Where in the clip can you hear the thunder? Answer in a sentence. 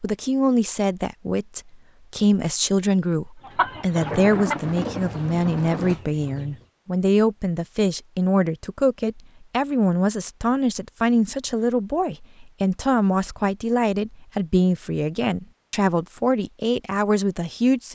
You can hear the thunder from 4.0 to 6.0 s.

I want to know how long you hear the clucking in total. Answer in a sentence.
The clucking can be heard for 3 seconds in total.